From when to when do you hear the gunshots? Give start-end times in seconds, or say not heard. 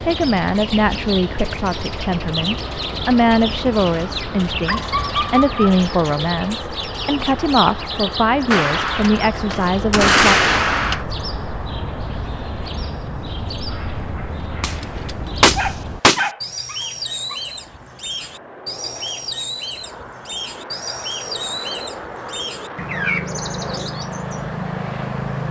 8.5-11.1, 14.6-16.3.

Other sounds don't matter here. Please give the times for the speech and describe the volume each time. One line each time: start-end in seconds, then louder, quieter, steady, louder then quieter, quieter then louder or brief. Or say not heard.
0.0-10.3 steady.